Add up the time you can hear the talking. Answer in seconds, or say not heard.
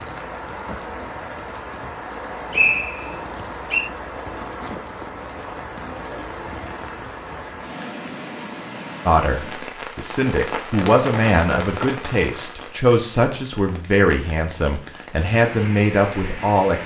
8 s.